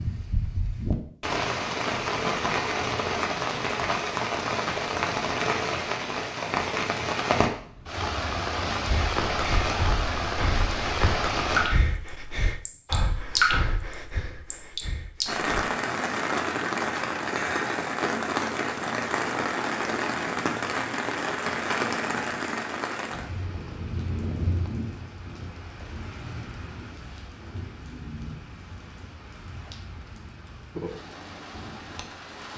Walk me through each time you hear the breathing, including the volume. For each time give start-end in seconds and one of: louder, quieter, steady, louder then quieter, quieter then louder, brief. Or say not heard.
8.8-15.4 quieter.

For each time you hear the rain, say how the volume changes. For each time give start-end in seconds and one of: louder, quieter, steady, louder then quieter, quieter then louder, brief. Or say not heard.
0.0-32.5 quieter.